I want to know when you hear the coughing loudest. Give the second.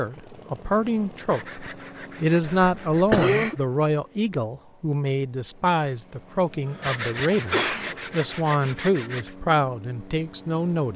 3 s.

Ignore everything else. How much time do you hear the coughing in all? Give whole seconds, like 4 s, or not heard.
2 s.